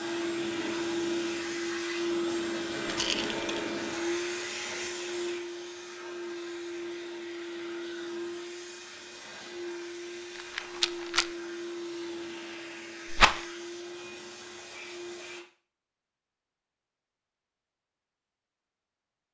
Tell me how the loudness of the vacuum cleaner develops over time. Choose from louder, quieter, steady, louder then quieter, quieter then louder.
quieter.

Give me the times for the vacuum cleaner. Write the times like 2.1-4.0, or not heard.
0.0-15.4.